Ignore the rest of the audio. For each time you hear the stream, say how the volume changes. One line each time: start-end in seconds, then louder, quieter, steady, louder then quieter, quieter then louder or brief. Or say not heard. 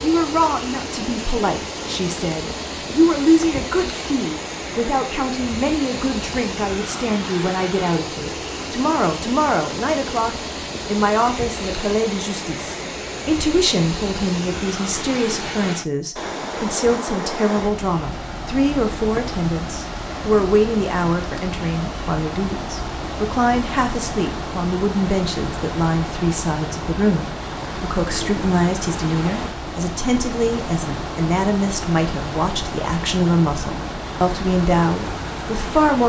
0.0-36.0 steady.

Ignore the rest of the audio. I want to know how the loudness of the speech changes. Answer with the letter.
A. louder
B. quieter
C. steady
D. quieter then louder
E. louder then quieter
C.